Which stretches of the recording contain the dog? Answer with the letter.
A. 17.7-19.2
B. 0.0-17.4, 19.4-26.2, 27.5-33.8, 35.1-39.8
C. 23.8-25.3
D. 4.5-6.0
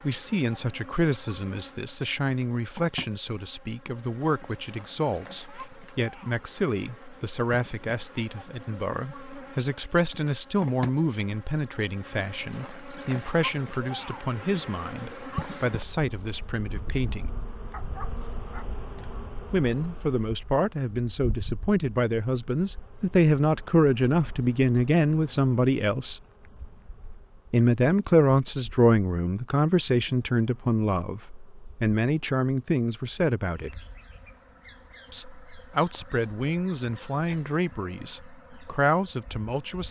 A.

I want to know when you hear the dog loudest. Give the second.
18 s.